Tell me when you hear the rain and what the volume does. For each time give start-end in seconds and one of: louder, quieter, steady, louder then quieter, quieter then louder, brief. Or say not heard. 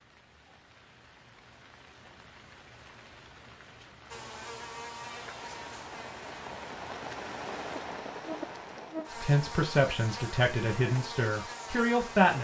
0.0-9.2 louder.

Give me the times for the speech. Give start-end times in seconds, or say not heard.
9.1-12.3.